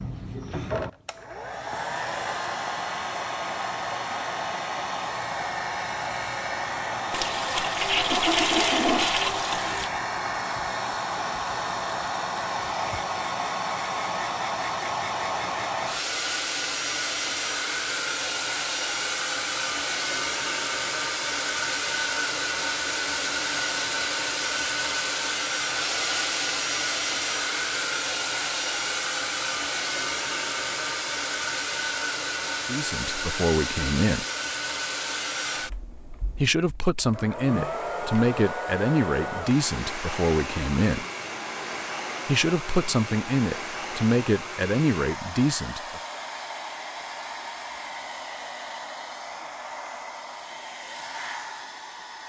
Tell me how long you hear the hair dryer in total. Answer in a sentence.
You can hear the hair dryer for 52 seconds altogether.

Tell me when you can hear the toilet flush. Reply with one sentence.
The toilet flush can be heard from 7.1 to 9.9 s.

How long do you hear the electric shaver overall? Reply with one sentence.
You can't hear the electric shaver here.